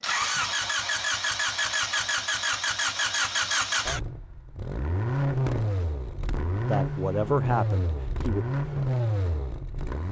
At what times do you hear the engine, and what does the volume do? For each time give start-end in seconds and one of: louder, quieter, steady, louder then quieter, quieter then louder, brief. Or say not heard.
0.0-10.0 steady.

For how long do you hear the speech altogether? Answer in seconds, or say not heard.
2 s.